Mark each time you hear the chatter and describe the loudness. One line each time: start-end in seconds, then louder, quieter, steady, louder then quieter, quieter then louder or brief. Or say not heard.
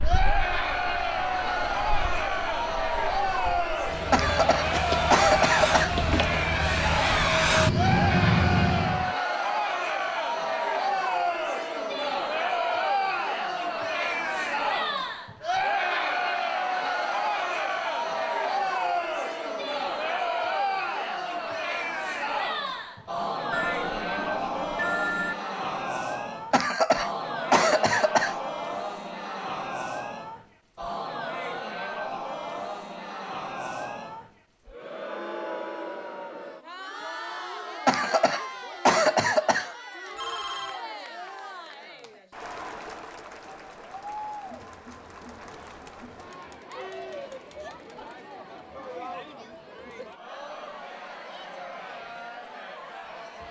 0.0-53.4 quieter.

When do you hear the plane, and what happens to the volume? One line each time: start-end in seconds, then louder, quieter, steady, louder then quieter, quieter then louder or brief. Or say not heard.
0.0-9.1 louder.